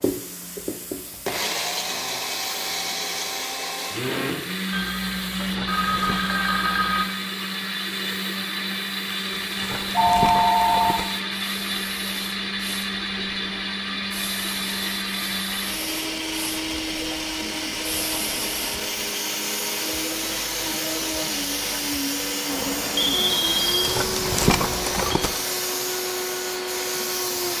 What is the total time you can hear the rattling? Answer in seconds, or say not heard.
4 s.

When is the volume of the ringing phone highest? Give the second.
10 s.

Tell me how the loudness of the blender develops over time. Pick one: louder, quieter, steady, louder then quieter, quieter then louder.
steady.